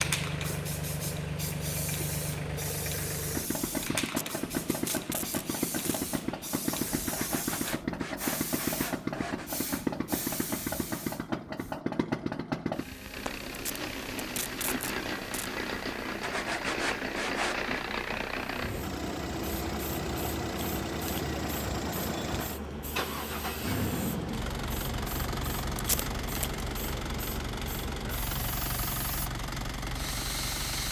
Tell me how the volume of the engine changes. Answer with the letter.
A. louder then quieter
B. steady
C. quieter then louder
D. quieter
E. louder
B.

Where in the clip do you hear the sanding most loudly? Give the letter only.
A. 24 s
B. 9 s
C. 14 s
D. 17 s
D.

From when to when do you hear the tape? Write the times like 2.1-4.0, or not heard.
4.0-6.0, 13.5-15.5, 25.8-26.6.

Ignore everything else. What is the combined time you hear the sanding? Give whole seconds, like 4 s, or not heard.
4 s.